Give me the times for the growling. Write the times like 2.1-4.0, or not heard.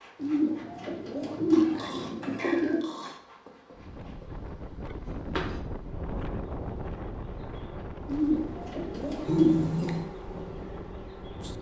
1.5-3.2, 9.1-10.1.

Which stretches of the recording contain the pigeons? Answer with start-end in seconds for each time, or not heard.
0.2-2.8, 8.1-10.0.